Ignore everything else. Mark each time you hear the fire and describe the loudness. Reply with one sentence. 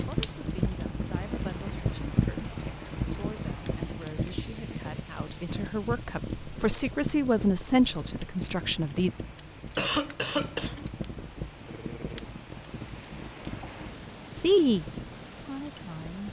The fire can be heard from 0.0 to 16.2 s, getting quieter.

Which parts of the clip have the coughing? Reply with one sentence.
The coughing can be heard from 9.8 to 10.8 s.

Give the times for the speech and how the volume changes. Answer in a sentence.
You can hear the speech from 0.1 to 9.1 s, getting louder; and briefly from 14.3 to 16.2 s.